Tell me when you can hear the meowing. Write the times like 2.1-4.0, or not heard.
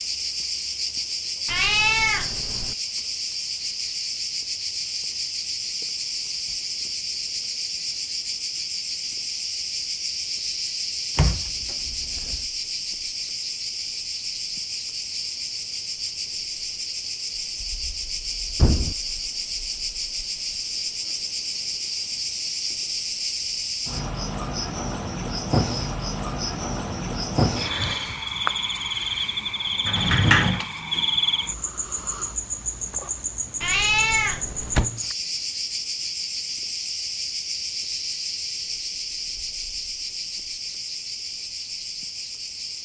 1.4-2.8, 33.6-34.9.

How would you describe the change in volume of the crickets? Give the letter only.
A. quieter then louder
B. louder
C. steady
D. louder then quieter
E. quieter
C.